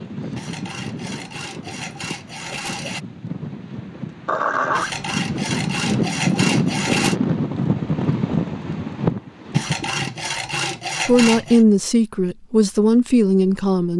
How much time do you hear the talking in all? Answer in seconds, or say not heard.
3 s.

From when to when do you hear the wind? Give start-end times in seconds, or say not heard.
0.0-10.1.